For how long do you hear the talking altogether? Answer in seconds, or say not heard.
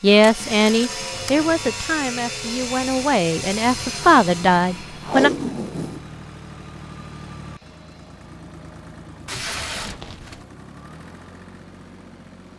5 s.